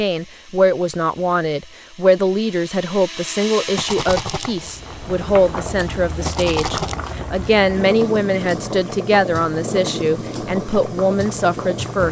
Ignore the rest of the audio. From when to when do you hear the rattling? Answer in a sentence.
The rattling can be heard from 3.8 to 4.5 s and from 6.2 to 7.0 s.